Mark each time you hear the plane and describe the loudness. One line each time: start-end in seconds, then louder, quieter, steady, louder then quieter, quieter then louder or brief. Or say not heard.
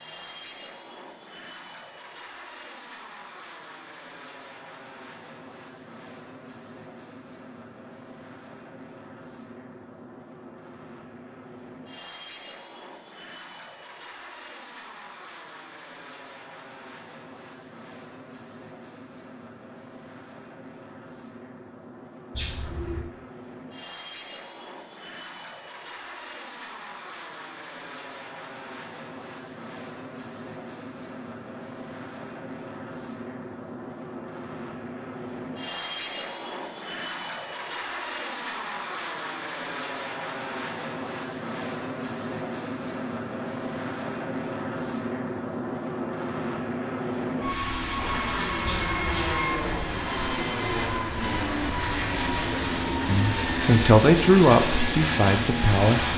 0.0-56.1 louder.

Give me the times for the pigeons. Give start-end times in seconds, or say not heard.
22.4-23.1, 48.6-49.4.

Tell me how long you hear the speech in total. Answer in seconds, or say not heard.
3 s.